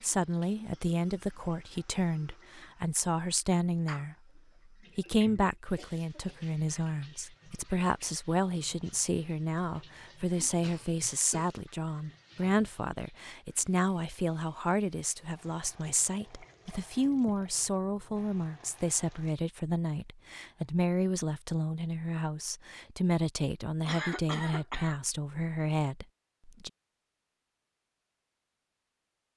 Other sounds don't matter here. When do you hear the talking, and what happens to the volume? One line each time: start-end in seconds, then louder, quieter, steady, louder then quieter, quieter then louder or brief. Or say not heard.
0.0-26.7 steady.